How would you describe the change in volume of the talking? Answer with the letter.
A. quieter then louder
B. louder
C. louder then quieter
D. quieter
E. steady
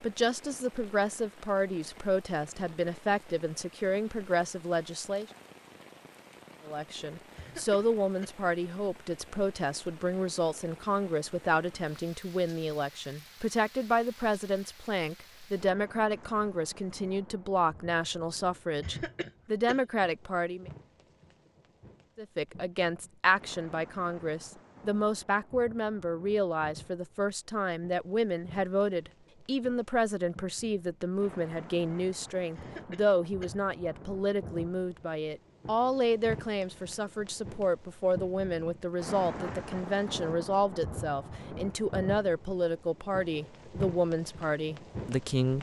E.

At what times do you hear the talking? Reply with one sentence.
You can hear the talking from 0.0 to 5.2 s, from 6.7 to 20.7 s and from 22.1 to 45.5 s.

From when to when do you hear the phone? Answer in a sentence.
You can't hear the phone here.